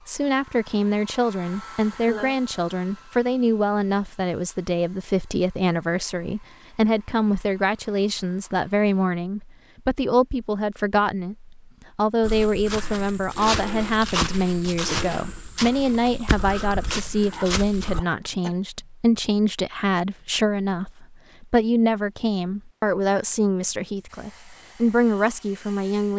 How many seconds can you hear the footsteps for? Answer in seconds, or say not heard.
6 s.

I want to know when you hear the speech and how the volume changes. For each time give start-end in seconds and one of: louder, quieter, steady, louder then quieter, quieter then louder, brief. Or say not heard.
0.1-26.1 steady.